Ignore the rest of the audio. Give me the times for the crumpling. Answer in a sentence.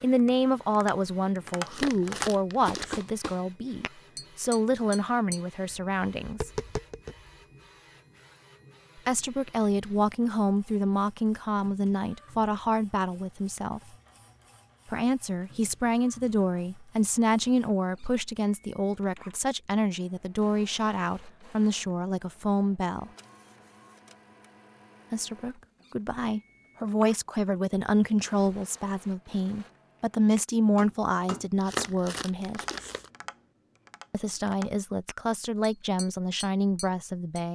You can hear the crumpling from 1.6 to 3.0 s and from 31.6 to 33.1 s.